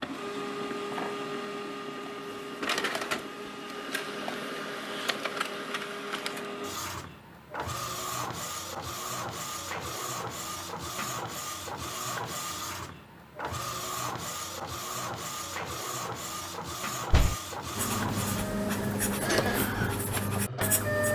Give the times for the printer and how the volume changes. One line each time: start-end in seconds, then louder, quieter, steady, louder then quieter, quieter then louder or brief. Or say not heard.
0.0-21.1 steady.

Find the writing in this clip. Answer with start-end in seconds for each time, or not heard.
17.8-21.1.